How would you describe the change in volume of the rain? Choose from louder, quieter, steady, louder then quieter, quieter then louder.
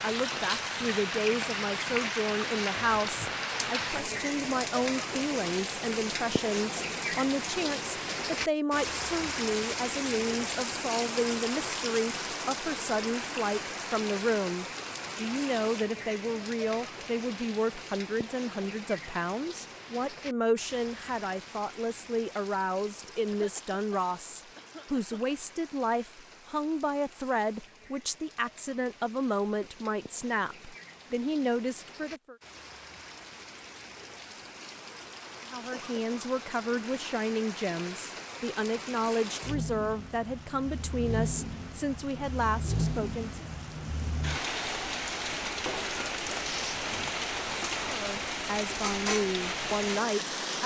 quieter then louder.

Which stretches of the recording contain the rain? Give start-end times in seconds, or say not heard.
0.0-50.6.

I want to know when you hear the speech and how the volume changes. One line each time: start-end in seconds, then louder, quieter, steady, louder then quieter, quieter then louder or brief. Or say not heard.
0.0-32.4 steady
35.5-43.5 steady
47.9-50.6 brief.